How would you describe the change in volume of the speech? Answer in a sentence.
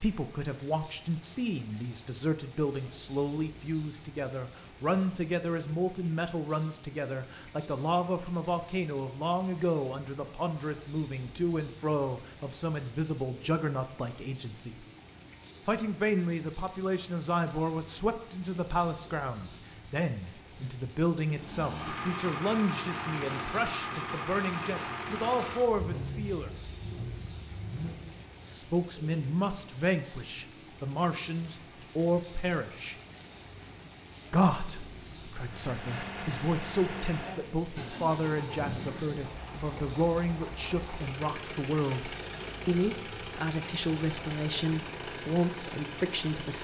The volume of the speech stays about the same.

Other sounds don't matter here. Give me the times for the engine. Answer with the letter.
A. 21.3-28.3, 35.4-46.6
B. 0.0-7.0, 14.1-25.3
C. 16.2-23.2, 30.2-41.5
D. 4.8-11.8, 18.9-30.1
A.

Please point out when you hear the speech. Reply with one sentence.
You can hear the speech from 0.0 to 14.8 s, from 15.7 to 26.7 s, from 28.5 to 33.0 s and from 34.3 to 46.6 s.